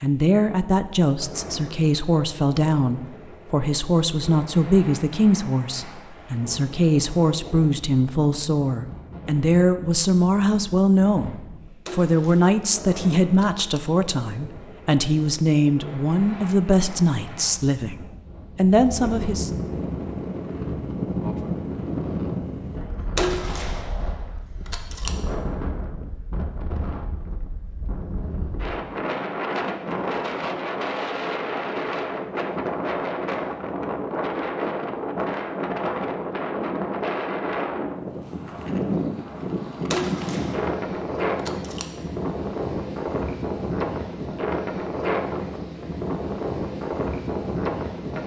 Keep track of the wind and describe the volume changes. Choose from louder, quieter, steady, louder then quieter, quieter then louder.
louder.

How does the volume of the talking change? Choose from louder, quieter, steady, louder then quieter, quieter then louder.
steady.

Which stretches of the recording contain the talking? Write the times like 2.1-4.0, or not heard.
0.0-19.6.